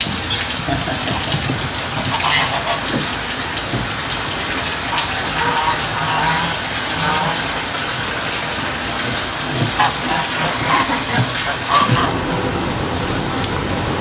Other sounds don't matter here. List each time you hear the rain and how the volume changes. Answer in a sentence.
The rain can be heard from 0.0 to 13.9 s, at a steady volume.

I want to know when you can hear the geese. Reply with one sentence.
You can hear the geese from 0.3 to 2.9 s, from 4.9 to 7.5 s and from 9.8 to 12.3 s.